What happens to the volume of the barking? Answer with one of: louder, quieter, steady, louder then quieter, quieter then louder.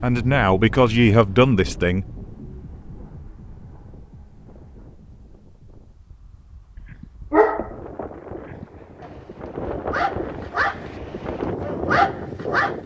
quieter then louder.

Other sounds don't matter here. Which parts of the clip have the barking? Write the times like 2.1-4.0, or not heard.
6.9-12.8.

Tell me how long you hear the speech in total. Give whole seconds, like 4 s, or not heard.
2 s.